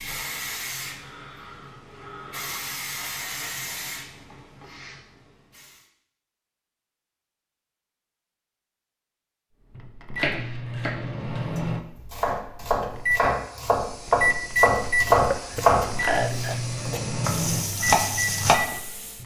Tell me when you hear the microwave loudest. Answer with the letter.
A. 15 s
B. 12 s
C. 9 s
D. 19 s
A.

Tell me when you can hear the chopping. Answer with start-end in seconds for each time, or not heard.
10.2-18.6.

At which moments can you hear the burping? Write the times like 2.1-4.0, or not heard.
15.2-16.6.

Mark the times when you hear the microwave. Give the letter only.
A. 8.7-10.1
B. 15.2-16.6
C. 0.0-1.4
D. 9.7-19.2
D.